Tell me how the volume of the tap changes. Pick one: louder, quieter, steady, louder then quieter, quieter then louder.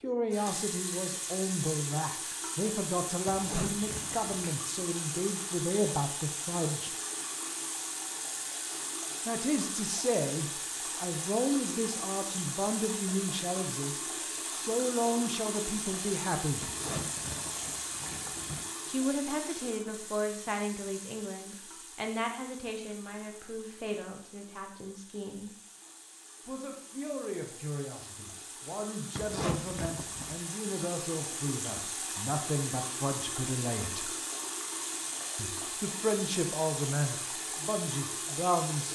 quieter then louder.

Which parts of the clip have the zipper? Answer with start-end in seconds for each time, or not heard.
3.2-4.5, 16.6-18.6, 29.1-30.4.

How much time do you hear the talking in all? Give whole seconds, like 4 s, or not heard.
32 s.